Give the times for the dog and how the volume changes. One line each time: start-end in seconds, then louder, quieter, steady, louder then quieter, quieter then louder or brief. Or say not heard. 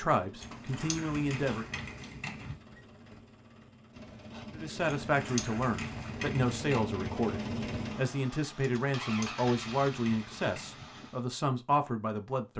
not heard.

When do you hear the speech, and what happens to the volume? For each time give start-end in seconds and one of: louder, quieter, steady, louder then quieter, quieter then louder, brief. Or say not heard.
0.0-1.6 brief
4.5-12.5 steady.